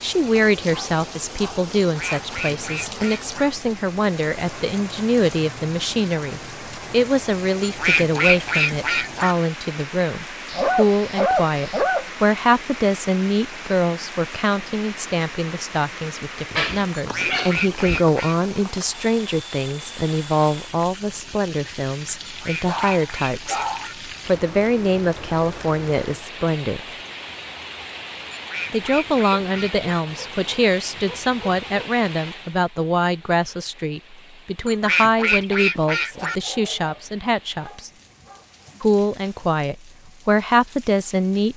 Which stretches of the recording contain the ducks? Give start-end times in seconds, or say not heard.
1.8-3.4, 7.6-9.3, 16.9-18.4, 22.2-23.9, 28.3-29.9, 34.6-36.4.